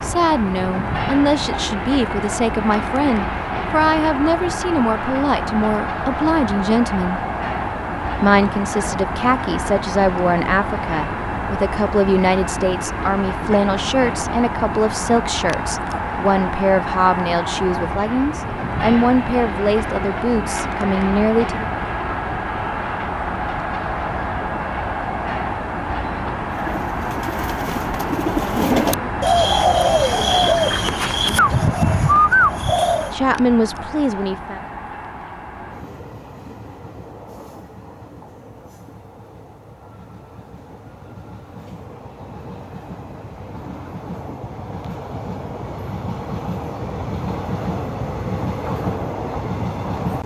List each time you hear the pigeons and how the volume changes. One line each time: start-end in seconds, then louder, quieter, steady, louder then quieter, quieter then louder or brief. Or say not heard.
26.5-33.1 louder.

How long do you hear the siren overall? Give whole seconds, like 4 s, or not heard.
not heard.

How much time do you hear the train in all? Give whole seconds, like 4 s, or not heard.
50 s.